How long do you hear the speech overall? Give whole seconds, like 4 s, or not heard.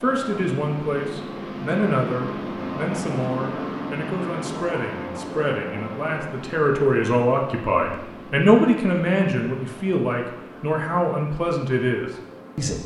13 s.